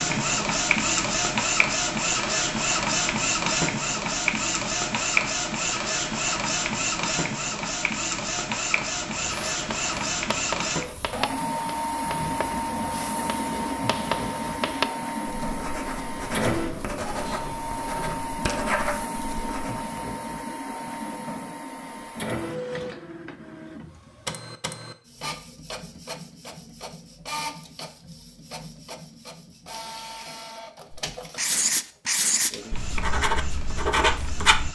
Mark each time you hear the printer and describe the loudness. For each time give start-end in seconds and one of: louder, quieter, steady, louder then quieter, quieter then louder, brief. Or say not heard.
0.0-34.6 quieter.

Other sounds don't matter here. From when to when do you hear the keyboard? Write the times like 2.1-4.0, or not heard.
not heard.